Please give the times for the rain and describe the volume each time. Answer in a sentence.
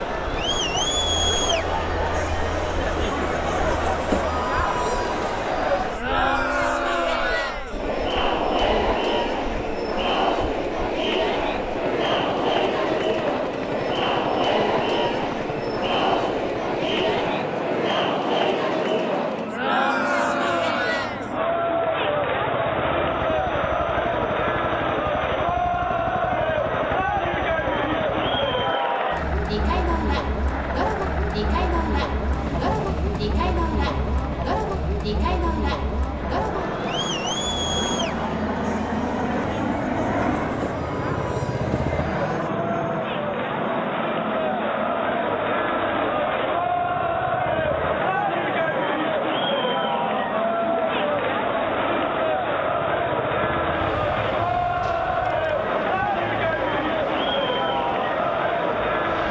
The rain can't be heard in this clip.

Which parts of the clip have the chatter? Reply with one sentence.
The chatter can be heard from 0.0 to 59.2 s.